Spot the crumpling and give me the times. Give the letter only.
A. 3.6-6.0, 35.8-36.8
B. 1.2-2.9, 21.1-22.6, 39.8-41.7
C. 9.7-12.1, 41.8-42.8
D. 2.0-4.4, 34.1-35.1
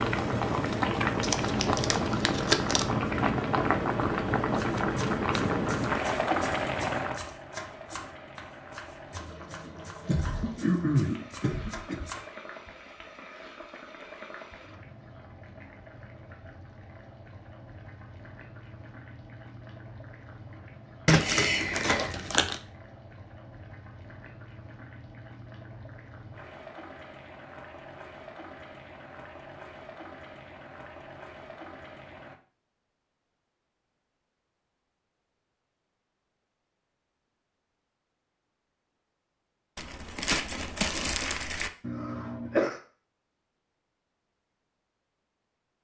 B.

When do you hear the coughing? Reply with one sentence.
The coughing can be heard from 9.7 to 12.1 s and from 41.8 to 42.8 s.